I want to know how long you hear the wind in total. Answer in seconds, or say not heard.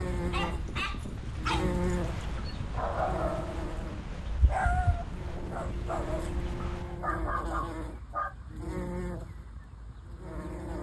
7 s.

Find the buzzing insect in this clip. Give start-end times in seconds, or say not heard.
0.0-10.7.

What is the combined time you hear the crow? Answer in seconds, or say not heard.
not heard.